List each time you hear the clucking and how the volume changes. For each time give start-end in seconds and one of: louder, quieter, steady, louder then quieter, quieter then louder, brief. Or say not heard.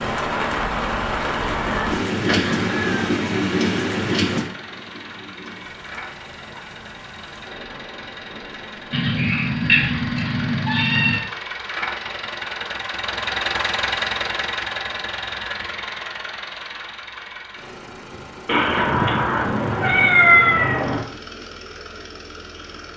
not heard.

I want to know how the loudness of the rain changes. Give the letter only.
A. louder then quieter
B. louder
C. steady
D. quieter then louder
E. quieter
E.